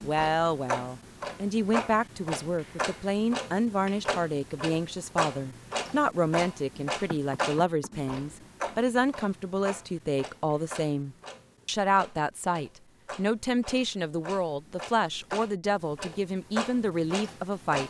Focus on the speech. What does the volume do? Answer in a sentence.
The volume of the speech stays about the same.